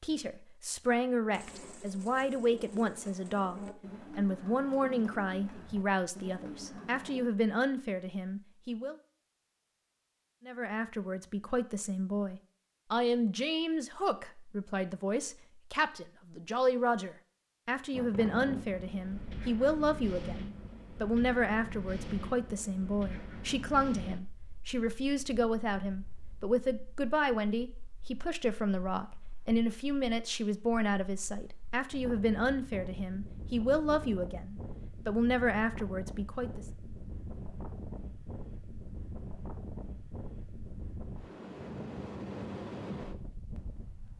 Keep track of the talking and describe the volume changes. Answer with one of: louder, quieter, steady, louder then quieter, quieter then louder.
steady.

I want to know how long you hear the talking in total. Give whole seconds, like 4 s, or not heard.
35 s.